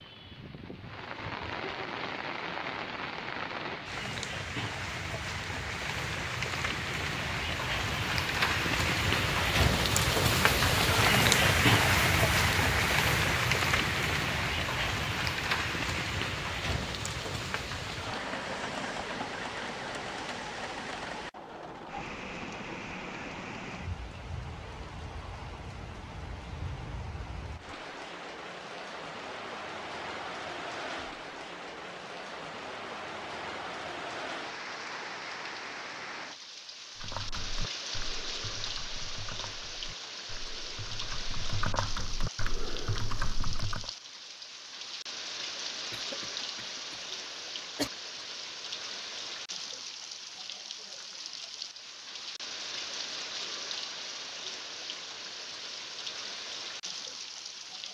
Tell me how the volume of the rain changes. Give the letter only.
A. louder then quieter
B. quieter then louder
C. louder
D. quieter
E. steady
D.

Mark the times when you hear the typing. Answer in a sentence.
The typing can be heard from 37.0 to 43.9 s.